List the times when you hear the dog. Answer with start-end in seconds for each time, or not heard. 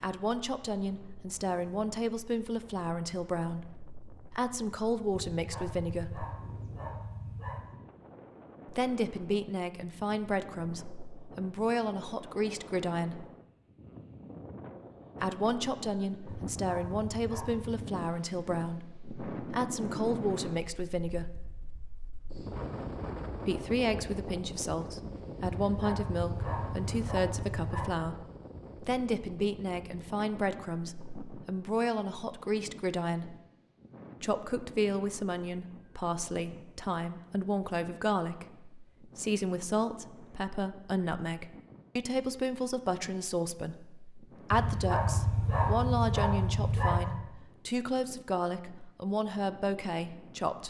5.3-7.8, 16.2-17.9, 25.4-28.0, 44.5-47.2.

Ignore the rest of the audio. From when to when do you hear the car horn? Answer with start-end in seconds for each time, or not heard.
not heard.